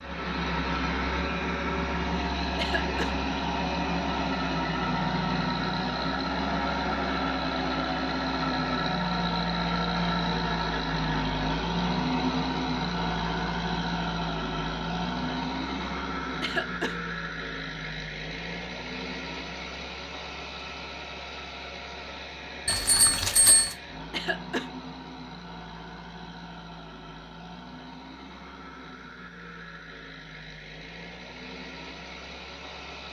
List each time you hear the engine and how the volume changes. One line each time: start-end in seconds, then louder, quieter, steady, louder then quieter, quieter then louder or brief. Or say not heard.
0.0-33.0 quieter.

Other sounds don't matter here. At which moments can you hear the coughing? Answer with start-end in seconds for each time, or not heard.
2.5-3.1, 16.4-16.9, 24.1-24.7.